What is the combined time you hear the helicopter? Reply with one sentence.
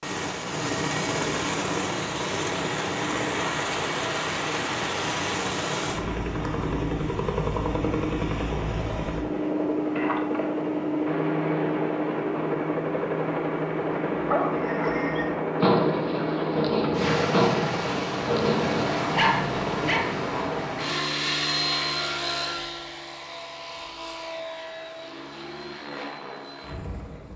The helicopter can be heard for 27 seconds in total.